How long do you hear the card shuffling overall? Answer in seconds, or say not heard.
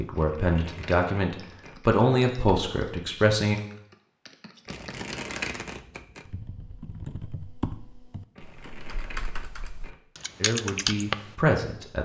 5 s.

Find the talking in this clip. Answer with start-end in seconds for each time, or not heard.
0.0-3.6, 10.4-12.0.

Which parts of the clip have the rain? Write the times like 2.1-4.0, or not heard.
not heard.